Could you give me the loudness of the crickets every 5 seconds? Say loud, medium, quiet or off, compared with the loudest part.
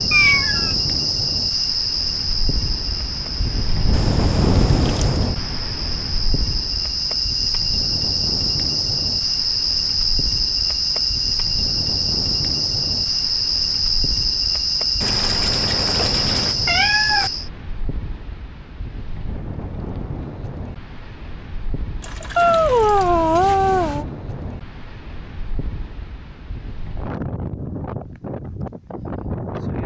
loud, loud, loud, loud, off, off.